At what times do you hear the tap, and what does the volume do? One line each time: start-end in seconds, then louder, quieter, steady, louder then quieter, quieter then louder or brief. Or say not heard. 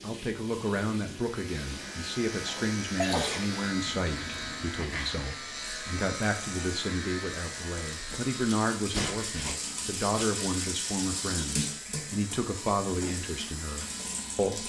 0.0-14.6 louder.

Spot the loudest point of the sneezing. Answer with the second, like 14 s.
3 s.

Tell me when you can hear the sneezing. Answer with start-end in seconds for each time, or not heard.
2.5-3.5, 8.0-10.2.